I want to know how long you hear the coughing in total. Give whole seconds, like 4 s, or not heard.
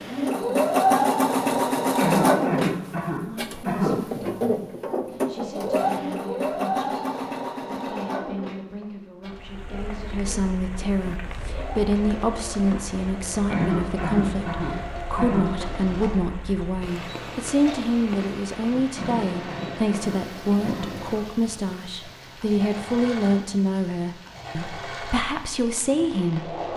6 s.